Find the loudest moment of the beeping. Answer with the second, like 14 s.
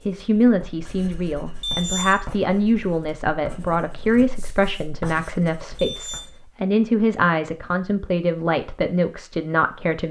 2 s.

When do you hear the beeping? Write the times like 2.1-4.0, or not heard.
1.6-2.4, 5.7-6.3.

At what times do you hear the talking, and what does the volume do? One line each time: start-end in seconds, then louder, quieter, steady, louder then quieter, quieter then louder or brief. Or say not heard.
0.1-10.0 steady.